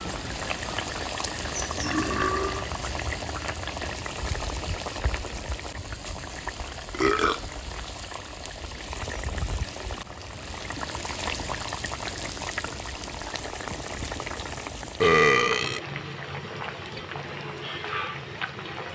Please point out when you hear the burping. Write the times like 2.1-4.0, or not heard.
1.8-2.6, 6.9-7.4, 15.0-15.8.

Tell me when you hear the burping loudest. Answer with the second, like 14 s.
15 s.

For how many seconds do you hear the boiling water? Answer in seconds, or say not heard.
19 s.